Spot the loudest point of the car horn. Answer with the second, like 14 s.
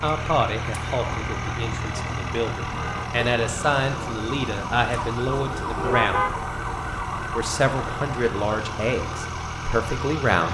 6 s.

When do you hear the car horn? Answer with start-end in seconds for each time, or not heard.
1.1-3.0, 5.8-6.3.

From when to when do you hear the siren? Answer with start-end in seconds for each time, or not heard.
0.1-10.4.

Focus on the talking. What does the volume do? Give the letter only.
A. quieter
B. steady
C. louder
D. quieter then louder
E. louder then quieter
B.